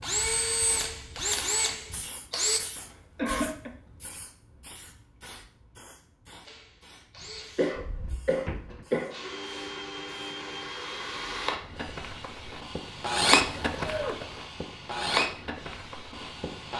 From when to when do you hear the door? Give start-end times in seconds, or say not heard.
7.7-8.8.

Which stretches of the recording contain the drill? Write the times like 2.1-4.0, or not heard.
0.0-2.6, 6.5-16.7.